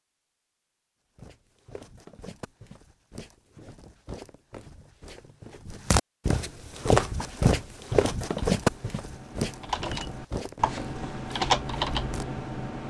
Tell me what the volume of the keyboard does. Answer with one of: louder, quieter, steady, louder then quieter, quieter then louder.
louder.